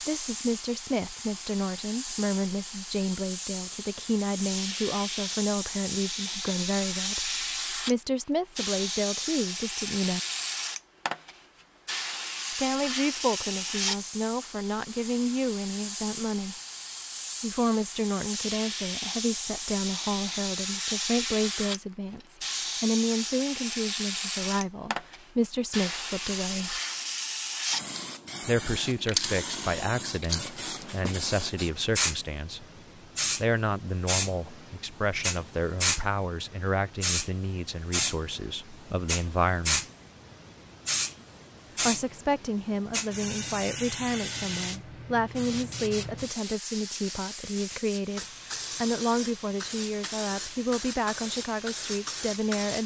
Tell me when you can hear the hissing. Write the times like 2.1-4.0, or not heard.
0.0-52.8.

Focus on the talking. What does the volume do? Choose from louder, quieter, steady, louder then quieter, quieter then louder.
steady.